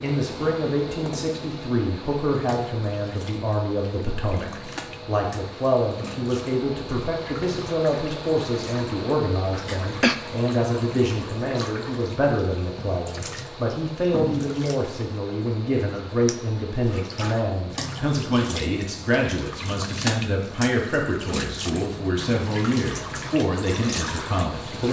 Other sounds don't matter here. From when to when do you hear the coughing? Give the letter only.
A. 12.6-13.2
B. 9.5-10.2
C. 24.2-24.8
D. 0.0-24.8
B.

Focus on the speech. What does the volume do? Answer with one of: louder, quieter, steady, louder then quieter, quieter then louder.
steady.